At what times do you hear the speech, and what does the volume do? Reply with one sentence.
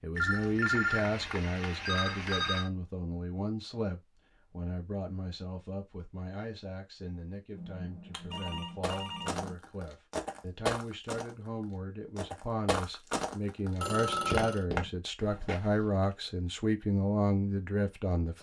The speech can be heard from 0.0 to 18.3 s, getting quieter then louder.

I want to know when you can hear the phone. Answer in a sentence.
You can hear the phone from 0.1 to 2.7 s, from 7.5 to 9.6 s and from 13.8 to 14.7 s.